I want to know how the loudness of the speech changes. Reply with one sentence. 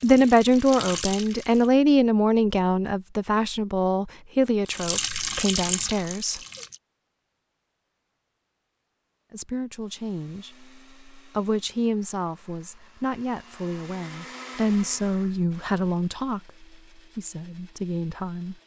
The volume of the speech goes down.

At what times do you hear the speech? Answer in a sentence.
You can hear the speech from 0.0 to 6.4 s and from 9.3 to 18.6 s.